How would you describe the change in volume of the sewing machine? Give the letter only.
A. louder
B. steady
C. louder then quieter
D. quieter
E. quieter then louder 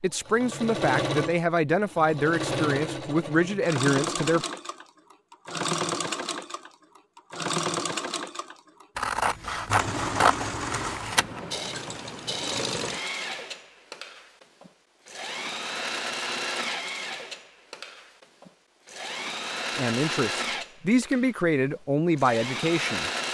B.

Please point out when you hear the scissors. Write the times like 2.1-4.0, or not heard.
8.9-11.4.